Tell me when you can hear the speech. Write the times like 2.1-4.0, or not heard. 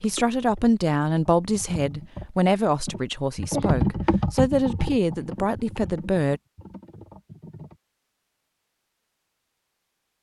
0.0-6.4.